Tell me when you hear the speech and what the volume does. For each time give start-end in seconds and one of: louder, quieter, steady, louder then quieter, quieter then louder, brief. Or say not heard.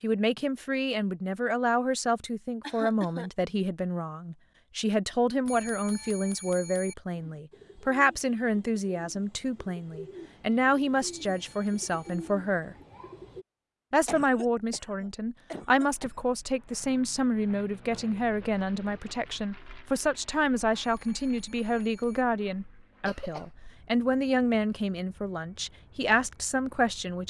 0.0-12.8 steady
13.9-27.2 steady.